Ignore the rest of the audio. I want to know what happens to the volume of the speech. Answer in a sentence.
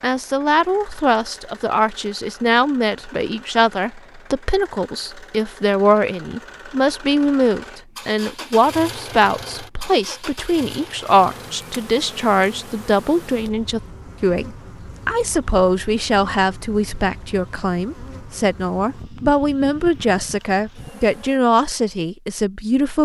The loudness of the speech stays about the same.